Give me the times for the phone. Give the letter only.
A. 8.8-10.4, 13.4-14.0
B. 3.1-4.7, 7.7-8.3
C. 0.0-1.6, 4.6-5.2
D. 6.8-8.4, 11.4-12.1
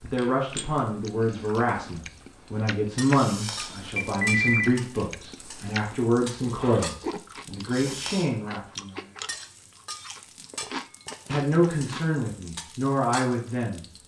B.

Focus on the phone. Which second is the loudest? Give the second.
4 s.